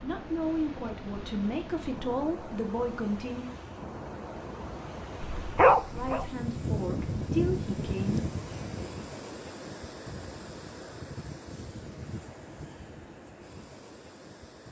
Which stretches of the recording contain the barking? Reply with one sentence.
The barking can be heard from 5.2 to 6.3 s.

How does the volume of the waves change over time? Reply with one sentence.
The loudness of the waves goes up, then down.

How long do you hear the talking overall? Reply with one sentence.
You can hear the talking for 6 seconds altogether.